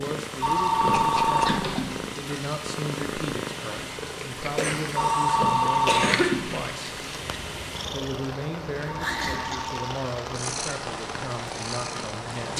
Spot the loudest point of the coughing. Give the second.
6 s.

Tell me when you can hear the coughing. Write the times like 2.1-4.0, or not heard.
0.9-1.9, 4.5-6.4, 9.3-9.8.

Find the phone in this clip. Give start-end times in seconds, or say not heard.
0.4-2.0, 5.0-6.7, 8.8-9.9.